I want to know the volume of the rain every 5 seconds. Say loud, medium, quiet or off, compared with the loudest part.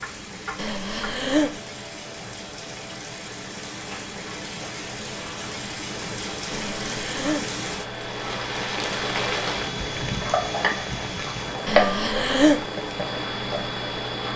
medium, loud, loud.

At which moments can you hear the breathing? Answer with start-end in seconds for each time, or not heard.
0.6-1.6, 6.5-7.5, 11.7-12.7.